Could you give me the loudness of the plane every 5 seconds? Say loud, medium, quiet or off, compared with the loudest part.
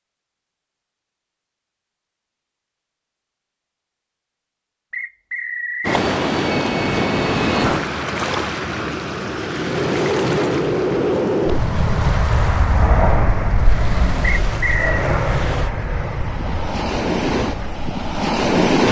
off, medium, loud, medium.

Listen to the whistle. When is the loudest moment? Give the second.
15 s.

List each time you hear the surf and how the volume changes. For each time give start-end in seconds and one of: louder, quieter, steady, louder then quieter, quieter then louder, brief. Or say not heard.
5.8-18.8 quieter then louder.